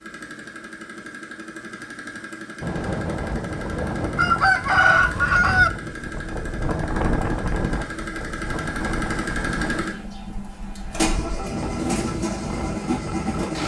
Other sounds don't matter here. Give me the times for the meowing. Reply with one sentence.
The meowing can't be heard in this clip.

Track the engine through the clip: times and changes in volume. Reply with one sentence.
You can hear the engine from 0.0 to 13.6 s, getting louder.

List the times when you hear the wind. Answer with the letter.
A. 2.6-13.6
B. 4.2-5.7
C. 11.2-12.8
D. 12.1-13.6
A.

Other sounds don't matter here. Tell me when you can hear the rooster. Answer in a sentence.
You can hear the rooster from 4.2 to 5.7 s.